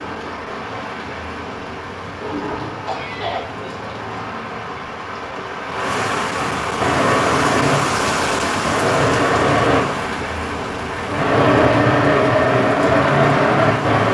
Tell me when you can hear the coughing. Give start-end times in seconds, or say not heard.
2.9-3.7.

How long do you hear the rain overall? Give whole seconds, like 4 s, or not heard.
14 s.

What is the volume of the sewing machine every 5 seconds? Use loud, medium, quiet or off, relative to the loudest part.
off, loud, loud.